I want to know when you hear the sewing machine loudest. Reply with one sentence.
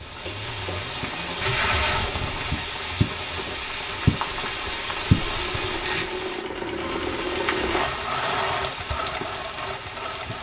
The loudest moment of the sewing machine is at 8 seconds.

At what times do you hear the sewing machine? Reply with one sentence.
The sewing machine can be heard from 0.0 to 10.3 s.